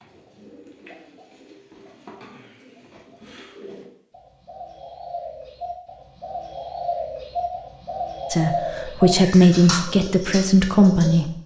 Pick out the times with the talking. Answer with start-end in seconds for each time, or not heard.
8.3-11.3.